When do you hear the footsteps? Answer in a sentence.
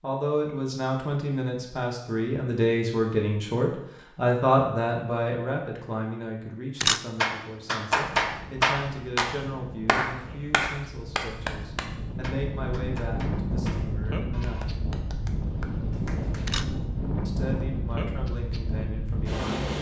The footsteps can't be heard in this clip.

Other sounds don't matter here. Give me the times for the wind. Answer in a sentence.
You can hear the wind from 8.1 to 19.7 s.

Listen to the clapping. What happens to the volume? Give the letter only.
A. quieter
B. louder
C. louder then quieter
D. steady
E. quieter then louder
A.